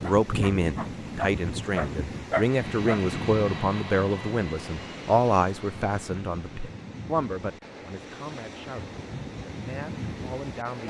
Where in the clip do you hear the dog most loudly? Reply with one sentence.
The loudest moment of the dog is at 2 seconds.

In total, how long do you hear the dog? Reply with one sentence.
The dog can be heard for 3 seconds in total.